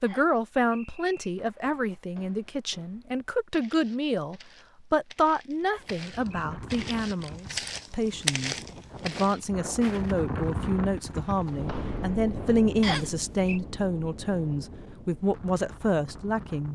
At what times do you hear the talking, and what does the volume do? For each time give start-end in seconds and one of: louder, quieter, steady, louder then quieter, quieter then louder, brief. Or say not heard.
0.0-16.7 steady.